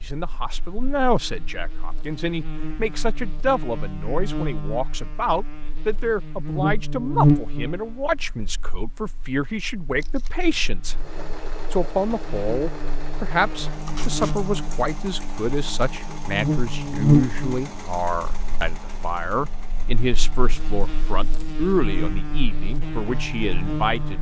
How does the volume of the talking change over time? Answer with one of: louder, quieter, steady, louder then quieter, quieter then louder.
steady.